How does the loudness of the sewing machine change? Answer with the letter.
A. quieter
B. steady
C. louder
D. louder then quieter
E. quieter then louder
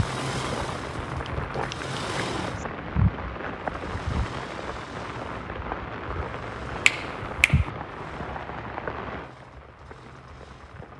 A.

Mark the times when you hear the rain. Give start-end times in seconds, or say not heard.
0.0-10.9.